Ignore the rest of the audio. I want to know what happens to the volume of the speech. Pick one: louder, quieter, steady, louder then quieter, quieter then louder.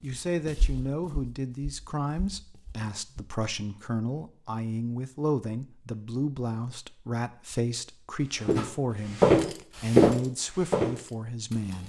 steady.